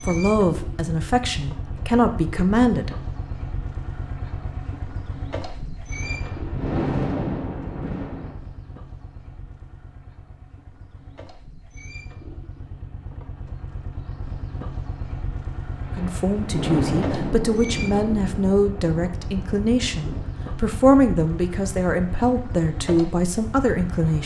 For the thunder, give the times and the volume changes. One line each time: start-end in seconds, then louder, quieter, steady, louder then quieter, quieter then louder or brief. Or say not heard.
5.9-8.4 brief
15.8-20.3 quieter.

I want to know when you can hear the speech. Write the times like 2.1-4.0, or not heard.
0.0-2.9, 15.9-24.2.